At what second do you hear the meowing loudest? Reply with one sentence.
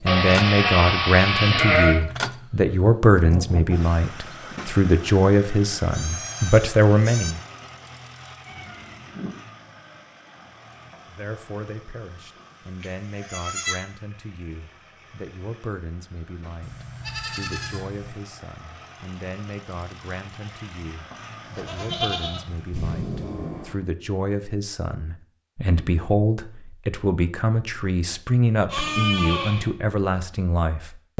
The volume of the meowing peaks at 23 seconds.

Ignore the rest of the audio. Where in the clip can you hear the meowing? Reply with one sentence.
You can hear the meowing from 8.4 to 9.3 s and from 22.7 to 23.8 s.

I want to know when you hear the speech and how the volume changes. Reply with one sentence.
You can hear the speech from 0.0 to 7.4 s, at a steady volume; and from 11.1 to 31.1 s, getting louder.